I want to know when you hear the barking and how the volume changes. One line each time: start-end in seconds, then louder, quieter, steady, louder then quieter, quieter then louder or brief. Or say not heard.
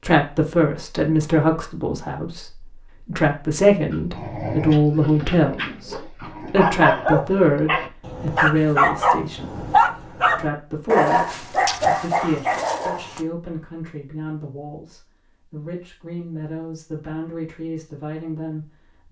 3.9-13.2 louder.